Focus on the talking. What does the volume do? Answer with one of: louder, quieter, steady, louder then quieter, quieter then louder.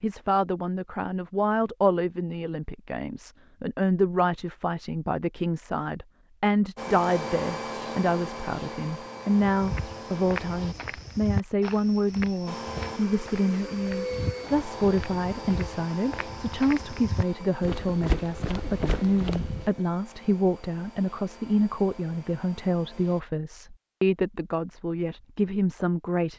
steady.